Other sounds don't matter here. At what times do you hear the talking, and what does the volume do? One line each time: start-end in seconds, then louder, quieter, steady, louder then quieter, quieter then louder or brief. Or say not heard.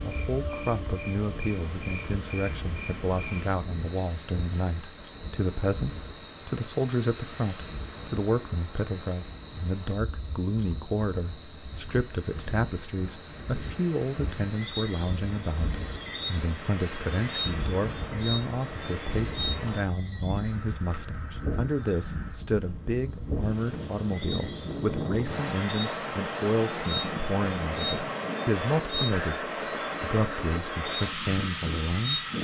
0.0-32.2 steady.